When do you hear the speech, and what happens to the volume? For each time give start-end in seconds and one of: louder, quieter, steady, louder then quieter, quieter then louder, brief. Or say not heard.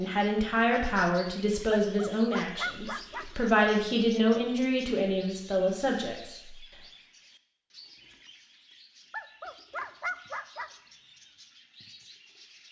0.0-6.5 steady.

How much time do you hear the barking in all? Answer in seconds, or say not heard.
3 s.